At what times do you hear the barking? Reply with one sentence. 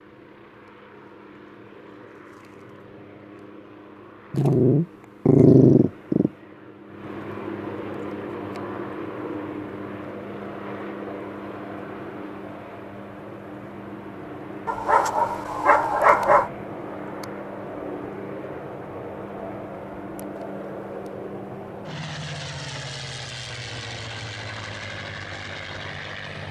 The barking can be heard from 4.3 to 6.3 s and from 14.7 to 16.5 s.